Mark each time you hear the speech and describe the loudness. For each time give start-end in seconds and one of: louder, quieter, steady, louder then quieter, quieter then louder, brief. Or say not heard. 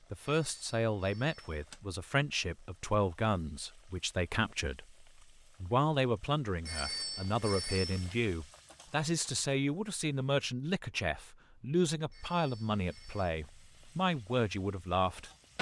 0.1-15.3 steady.